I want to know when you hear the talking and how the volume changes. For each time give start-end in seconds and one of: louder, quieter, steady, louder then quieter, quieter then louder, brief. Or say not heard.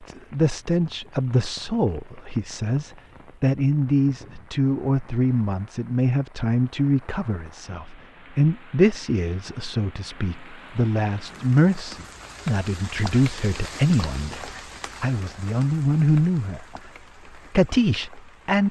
0.0-16.6 steady
17.6-18.6 brief.